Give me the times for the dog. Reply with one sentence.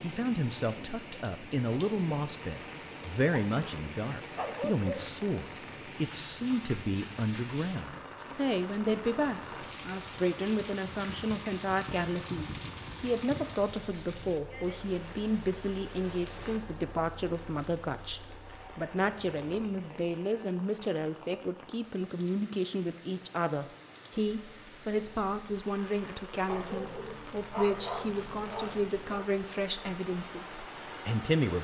You can hear the dog from 3.3 to 5.0 s and from 26.4 to 29.3 s.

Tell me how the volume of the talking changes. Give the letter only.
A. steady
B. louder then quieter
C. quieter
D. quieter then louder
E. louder
A.